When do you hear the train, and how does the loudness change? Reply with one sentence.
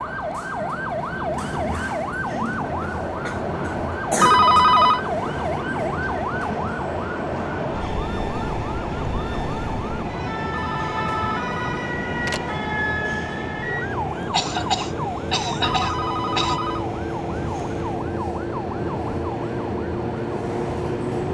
The train can be heard from 0.0 to 21.2 s, at a steady volume.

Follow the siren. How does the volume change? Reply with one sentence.
The loudness of the siren stays about the same.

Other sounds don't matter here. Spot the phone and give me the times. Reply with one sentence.
The phone can be heard from 4.2 to 5.0 s, from 10.5 to 12.4 s and from 15.6 to 16.9 s.